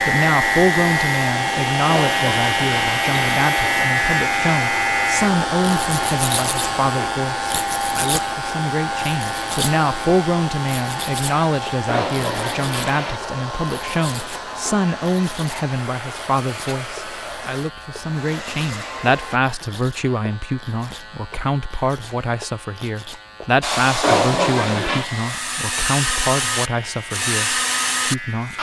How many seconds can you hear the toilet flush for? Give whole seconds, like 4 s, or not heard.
4 s.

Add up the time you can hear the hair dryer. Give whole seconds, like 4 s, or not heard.
24 s.